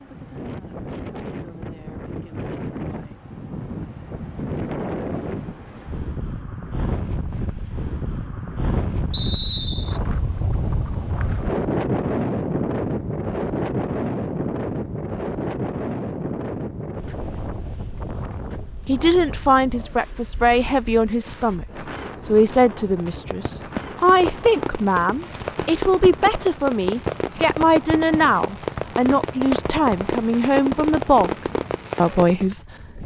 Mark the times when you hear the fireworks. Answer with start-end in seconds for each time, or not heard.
22.9-32.5.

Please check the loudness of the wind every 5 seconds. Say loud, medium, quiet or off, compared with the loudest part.
medium, medium, loud, medium, quiet, quiet, quiet.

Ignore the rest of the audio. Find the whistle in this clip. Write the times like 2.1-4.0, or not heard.
9.1-10.0.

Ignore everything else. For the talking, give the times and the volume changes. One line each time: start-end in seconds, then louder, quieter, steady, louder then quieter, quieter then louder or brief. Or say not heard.
18.9-31.4 steady
31.9-33.0 brief.